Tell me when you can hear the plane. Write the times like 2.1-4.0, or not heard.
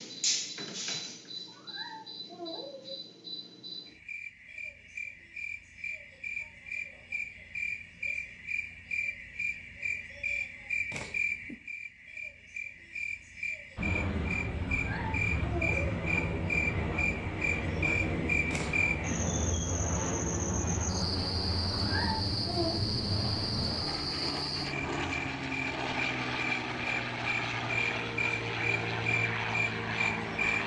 13.8-30.6.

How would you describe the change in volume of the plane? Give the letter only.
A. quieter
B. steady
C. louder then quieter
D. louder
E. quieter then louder
B.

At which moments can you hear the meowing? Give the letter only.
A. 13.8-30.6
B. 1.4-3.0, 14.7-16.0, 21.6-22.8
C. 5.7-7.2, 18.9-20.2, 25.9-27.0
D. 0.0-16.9
B.